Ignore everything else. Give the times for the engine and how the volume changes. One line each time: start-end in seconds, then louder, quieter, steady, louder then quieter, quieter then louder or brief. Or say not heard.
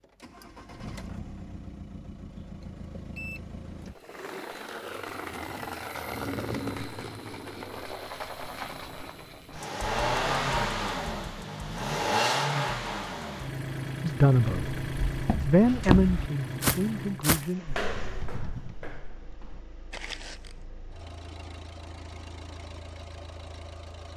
0.0-24.1 louder then quieter.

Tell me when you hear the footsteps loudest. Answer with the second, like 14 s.
16 s.